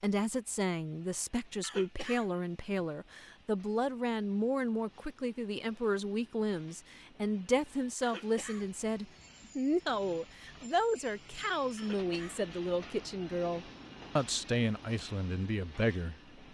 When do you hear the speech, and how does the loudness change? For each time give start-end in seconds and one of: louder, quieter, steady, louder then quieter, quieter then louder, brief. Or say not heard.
0.0-16.1 steady.